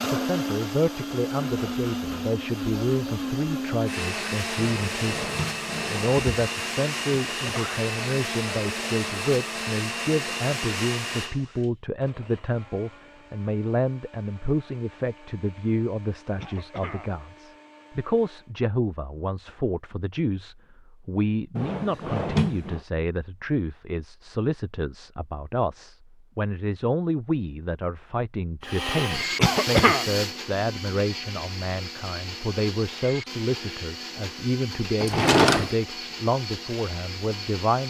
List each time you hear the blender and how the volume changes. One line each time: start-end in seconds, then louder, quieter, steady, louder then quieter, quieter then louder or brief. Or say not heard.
0.0-18.6 quieter
28.6-37.8 quieter.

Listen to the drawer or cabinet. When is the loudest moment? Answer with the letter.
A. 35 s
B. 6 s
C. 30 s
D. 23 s
A.